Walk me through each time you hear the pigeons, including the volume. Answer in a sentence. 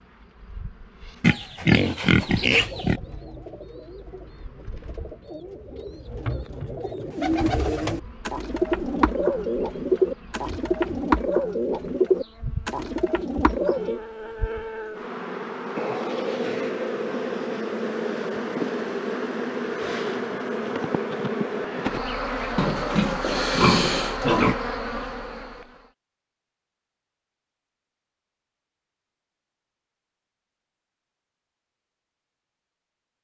The pigeons can be heard from 2.5 to 14.0 s, getting louder.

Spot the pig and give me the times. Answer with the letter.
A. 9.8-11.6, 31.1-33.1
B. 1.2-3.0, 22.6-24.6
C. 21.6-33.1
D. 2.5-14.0
B.